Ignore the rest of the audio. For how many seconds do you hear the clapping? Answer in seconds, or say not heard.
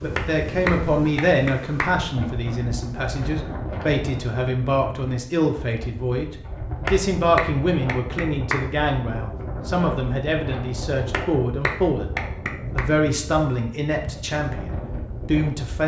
5 s.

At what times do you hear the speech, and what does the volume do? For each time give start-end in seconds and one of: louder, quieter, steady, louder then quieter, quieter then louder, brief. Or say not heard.
0.0-15.8 steady.